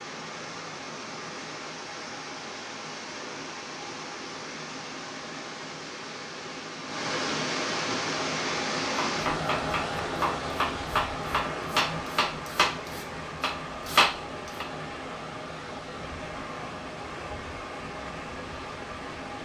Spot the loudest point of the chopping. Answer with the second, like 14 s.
14 s.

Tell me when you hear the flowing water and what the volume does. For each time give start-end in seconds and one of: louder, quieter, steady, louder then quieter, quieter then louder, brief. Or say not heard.
0.0-19.4 louder then quieter.